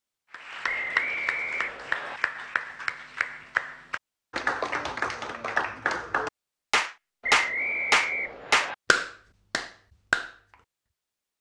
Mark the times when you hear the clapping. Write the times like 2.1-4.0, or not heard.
0.3-10.3.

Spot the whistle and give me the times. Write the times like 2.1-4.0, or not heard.
0.7-2.2, 7.2-8.8.